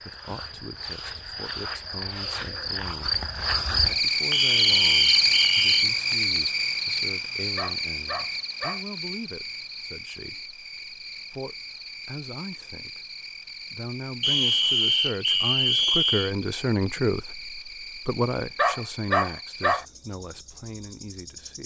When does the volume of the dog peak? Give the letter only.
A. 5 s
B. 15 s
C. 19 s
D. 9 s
C.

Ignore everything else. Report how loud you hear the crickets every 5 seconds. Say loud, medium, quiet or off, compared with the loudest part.
loud, loud, quiet, quiet, quiet.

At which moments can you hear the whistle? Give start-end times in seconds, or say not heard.
4.3-5.8, 14.2-16.3.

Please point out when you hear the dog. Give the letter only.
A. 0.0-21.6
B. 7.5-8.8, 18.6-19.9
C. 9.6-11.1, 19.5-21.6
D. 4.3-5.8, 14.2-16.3
B.